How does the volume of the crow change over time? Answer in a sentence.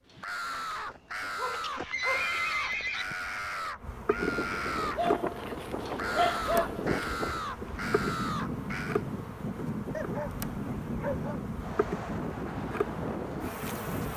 The volume of the crow stays about the same.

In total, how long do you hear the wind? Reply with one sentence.
The wind can be heard for 10 seconds in total.